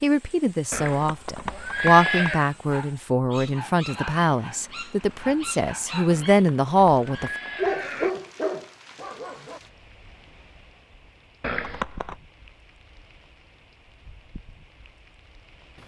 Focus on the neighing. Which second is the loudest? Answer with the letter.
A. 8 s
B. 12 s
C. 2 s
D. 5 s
C.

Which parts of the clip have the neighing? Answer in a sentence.
You can hear the neighing from 0.7 to 2.5 s, from 6.1 to 8.1 s and from 11.4 to 12.2 s.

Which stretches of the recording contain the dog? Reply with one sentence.
The dog can be heard from 2.5 to 9.6 s.